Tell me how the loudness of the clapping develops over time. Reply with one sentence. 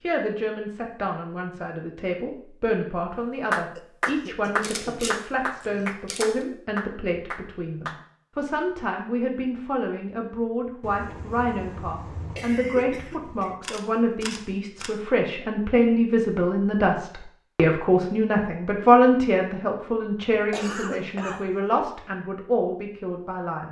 The loudness of the clapping goes down.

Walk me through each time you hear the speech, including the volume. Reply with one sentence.
You can hear the speech from 0.0 to 23.6 s, getting louder.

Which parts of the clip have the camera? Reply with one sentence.
You can hear the camera from 4.6 to 6.5 s and from 13.6 to 14.9 s.